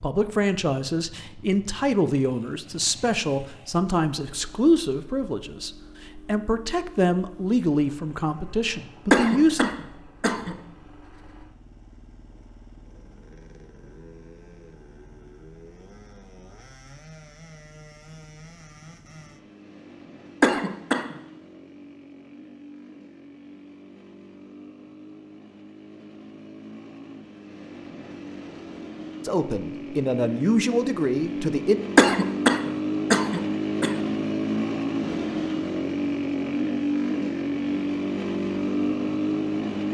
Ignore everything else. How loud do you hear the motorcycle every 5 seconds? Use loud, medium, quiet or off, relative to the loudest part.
quiet, quiet, quiet, quiet, quiet, quiet, loud, loud.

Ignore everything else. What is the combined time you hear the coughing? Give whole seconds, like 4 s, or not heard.
4 s.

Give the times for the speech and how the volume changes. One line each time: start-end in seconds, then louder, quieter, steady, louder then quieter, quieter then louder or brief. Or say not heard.
0.0-9.7 steady
29.2-31.8 brief.